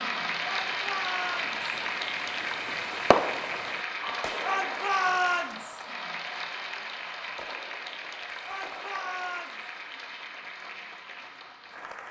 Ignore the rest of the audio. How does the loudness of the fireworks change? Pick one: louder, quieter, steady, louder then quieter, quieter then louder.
louder then quieter.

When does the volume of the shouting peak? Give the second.
5 s.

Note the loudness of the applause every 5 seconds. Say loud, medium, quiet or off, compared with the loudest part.
loud, medium, medium.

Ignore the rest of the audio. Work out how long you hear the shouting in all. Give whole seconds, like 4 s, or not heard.
4 s.